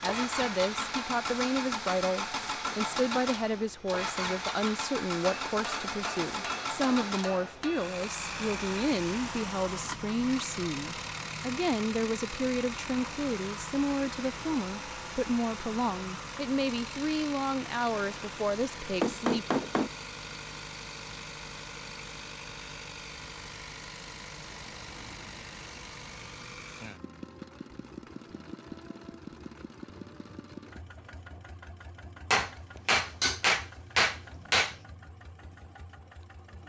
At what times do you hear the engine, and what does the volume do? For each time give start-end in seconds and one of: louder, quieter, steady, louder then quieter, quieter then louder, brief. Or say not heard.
0.0-36.6 quieter.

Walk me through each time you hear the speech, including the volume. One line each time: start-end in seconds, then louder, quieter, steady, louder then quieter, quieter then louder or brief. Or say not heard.
0.0-19.4 steady.